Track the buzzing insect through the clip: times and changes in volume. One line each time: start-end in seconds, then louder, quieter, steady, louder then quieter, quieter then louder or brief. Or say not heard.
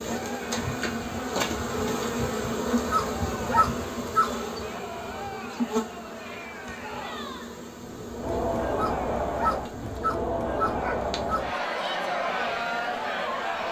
0.0-13.6 quieter.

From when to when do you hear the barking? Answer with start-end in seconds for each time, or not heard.
2.7-4.3, 8.7-11.4.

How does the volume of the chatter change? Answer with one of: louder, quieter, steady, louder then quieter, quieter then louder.
louder.